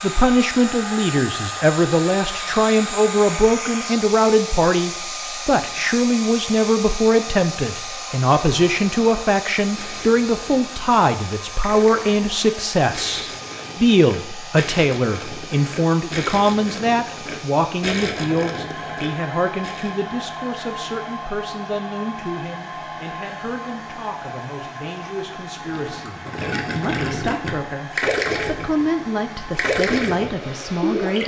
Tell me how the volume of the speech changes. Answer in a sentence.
The loudness of the speech goes down.